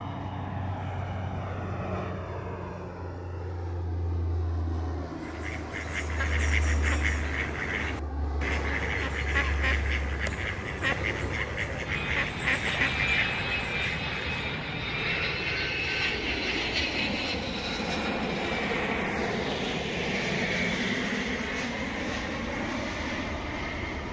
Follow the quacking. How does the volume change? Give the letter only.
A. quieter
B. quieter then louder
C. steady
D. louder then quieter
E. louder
C.